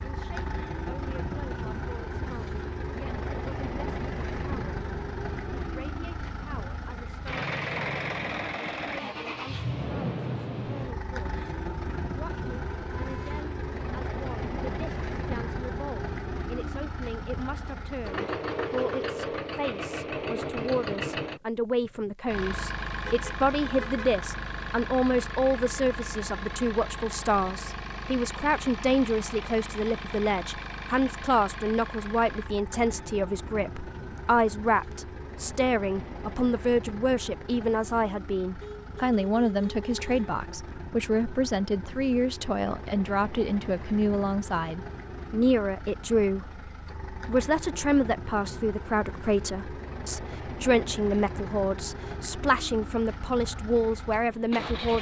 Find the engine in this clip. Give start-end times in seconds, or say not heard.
0.0-54.9.